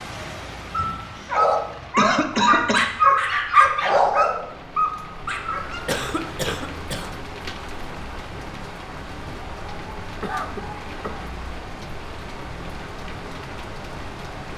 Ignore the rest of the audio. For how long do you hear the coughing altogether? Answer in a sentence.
You can hear the coughing for 3 seconds altogether.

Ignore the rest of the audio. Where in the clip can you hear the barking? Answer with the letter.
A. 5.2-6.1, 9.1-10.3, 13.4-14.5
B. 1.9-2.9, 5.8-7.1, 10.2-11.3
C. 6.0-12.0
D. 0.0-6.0
D.